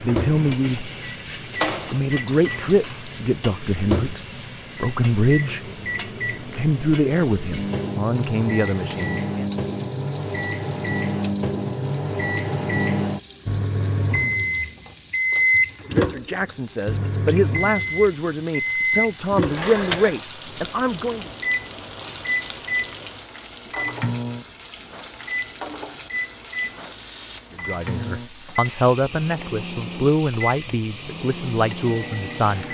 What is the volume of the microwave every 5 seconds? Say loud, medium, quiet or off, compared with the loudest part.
medium, medium, loud, loud, medium, medium, medium.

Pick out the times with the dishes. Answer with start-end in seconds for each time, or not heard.
1.6-3.1, 19.4-20.3.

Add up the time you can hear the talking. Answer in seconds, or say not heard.
18 s.